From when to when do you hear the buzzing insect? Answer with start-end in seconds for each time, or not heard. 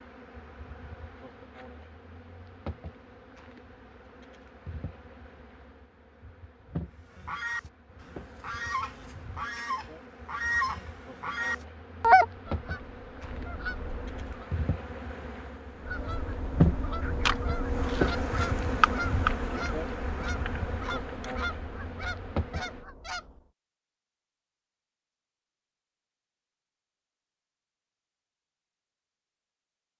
0.0-22.9.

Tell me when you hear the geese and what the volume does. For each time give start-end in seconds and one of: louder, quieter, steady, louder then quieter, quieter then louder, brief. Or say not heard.
7.2-14.5 louder then quieter
15.8-23.4 quieter.